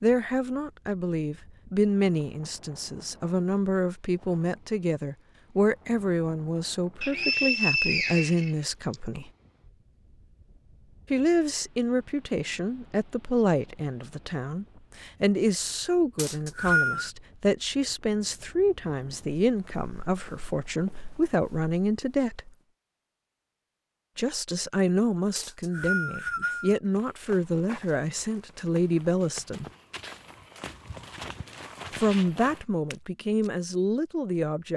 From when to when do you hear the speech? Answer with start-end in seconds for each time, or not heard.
0.0-9.3, 11.1-22.5, 24.1-29.6, 31.9-34.7.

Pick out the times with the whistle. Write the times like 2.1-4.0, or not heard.
7.0-8.9, 16.1-17.1, 25.4-26.8.